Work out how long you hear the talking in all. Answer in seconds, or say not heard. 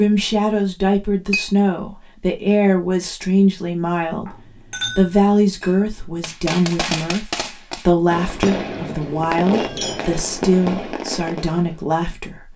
12 s.